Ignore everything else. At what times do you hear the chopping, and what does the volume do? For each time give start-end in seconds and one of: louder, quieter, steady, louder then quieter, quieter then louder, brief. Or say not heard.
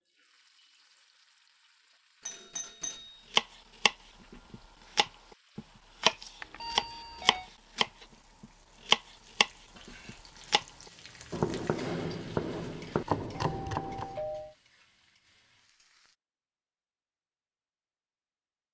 3.3-10.7 louder then quieter
11.3-14.1 brief.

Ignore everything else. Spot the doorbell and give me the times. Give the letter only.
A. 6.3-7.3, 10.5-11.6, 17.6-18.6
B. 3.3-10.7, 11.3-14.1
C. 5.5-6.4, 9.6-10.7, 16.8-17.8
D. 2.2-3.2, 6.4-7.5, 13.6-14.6
D.